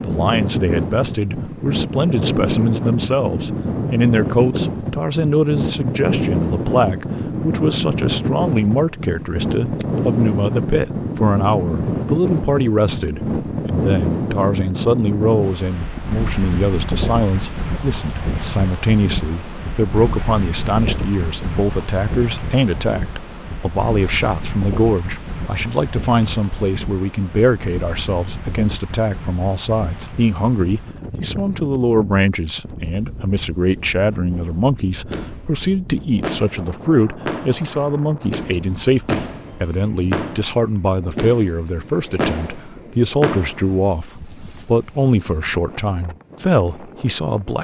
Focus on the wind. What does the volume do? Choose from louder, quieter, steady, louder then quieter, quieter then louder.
quieter.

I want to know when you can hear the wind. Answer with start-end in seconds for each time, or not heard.
0.0-47.5.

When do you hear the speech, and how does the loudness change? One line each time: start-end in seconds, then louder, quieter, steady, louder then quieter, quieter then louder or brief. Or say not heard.
0.0-47.5 steady.